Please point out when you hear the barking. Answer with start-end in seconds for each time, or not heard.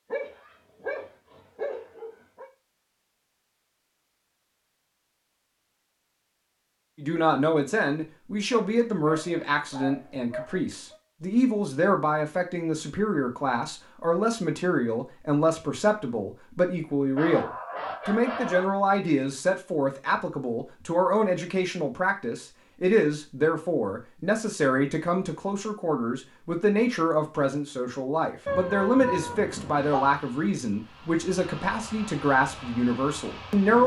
0.1-2.5, 8.5-11.0, 17.1-18.6, 28.4-30.0.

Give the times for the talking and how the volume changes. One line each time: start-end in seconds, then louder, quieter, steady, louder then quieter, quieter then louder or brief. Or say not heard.
7.0-33.8 steady.